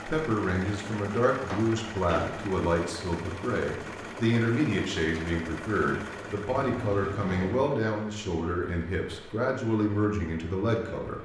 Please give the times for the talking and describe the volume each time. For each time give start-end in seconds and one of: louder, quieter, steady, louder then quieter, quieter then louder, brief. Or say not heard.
0.1-11.1 steady.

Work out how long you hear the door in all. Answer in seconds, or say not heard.
2 s.